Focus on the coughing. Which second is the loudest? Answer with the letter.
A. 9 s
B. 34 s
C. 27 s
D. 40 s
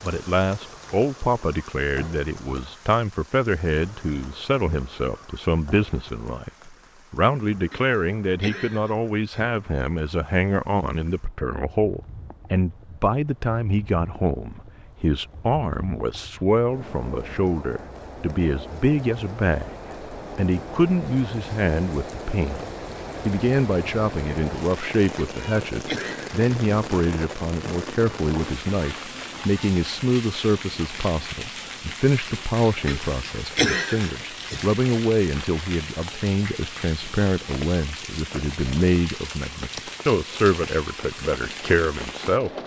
B.